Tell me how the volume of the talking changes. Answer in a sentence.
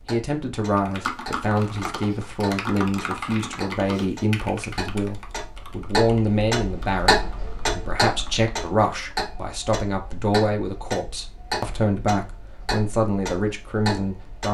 The volume of the talking stays about the same.